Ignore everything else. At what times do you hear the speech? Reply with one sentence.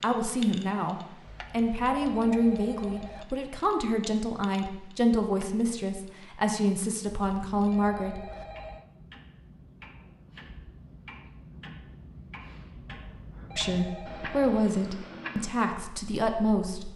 You can hear the speech from 0.0 to 8.2 s and from 13.6 to 16.9 s.